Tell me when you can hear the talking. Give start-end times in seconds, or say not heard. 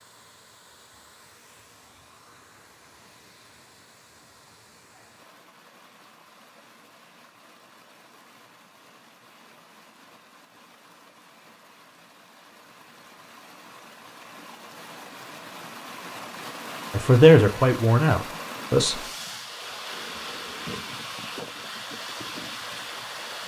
16.9-19.0.